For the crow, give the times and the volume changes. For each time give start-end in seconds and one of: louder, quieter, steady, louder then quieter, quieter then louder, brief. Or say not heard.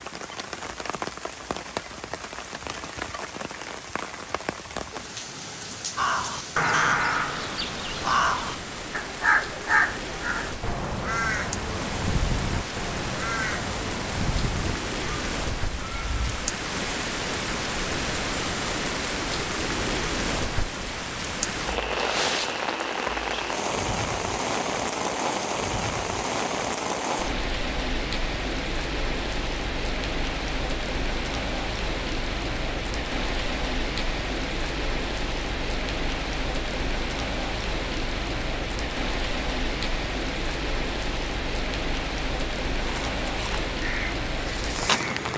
6.0-16.4 quieter
42.8-45.2 brief.